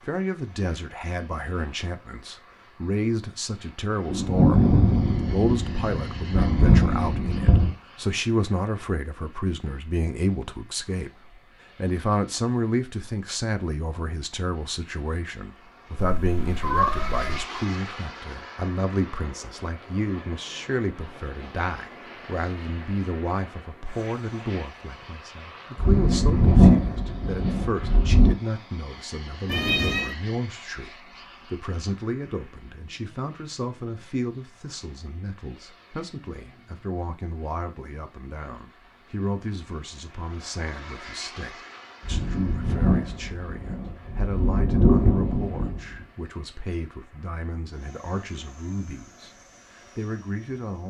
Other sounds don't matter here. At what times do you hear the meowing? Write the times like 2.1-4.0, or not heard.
15.9-17.4, 29.4-30.1.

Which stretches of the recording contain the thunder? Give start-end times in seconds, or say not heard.
4.0-7.8, 25.8-28.4, 42.0-46.0.